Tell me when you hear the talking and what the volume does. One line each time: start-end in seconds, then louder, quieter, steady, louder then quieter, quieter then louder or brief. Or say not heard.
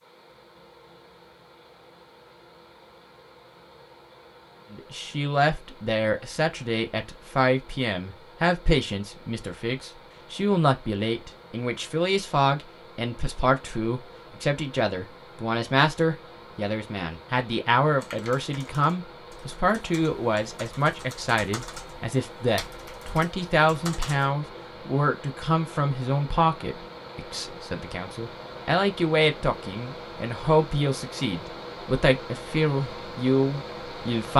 4.7-34.3 steady.